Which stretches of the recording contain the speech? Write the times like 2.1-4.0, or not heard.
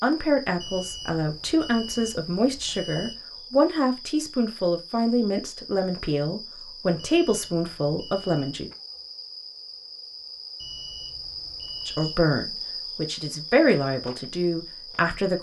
0.0-8.7, 11.8-15.3.